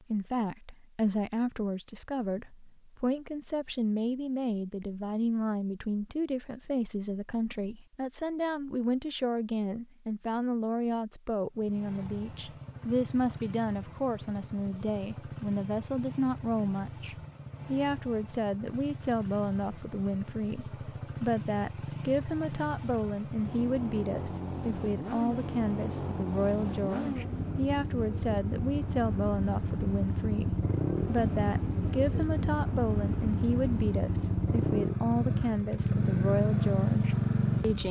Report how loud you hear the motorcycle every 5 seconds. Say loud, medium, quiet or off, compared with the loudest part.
off, off, quiet, quiet, medium, medium, loud, loud.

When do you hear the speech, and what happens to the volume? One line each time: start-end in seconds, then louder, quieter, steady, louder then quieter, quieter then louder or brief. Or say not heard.
0.1-37.8 steady.